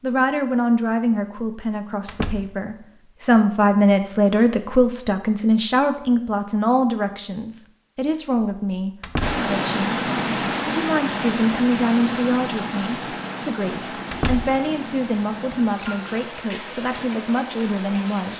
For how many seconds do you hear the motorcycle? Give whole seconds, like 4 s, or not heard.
not heard.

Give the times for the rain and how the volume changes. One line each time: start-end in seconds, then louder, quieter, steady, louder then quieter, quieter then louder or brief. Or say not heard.
9.2-18.3 quieter.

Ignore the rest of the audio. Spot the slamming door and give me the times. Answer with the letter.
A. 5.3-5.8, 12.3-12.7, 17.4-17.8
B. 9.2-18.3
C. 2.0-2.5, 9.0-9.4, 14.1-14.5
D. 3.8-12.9
C.